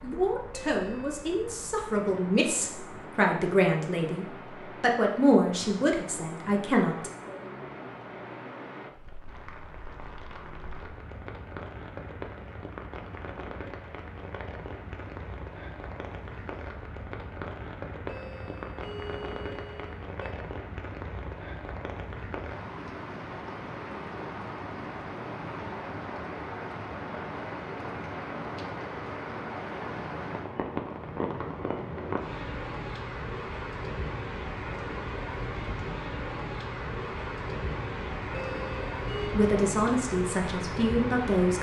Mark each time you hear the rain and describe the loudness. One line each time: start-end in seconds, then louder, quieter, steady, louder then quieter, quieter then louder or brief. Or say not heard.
0.0-41.5 louder.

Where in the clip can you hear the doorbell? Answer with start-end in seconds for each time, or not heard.
0.7-1.2, 18.1-20.4, 38.3-39.4.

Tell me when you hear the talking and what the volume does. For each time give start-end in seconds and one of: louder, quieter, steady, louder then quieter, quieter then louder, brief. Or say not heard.
0.0-7.1 louder then quieter
39.4-41.5 brief.